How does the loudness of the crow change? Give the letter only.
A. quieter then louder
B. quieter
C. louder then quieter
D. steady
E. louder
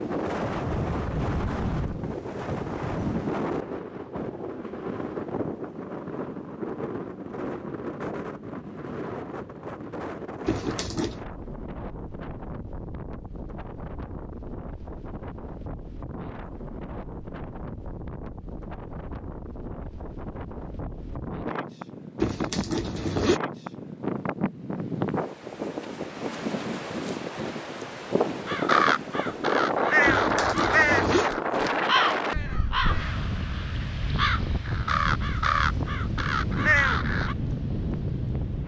A.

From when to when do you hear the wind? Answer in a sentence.
You can hear the wind from 0.0 to 38.6 s.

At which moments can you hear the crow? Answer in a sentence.
The crow can be heard from 28.4 to 37.4 s.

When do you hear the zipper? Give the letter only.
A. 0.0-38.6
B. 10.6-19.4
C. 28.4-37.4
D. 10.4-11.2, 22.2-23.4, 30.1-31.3
D.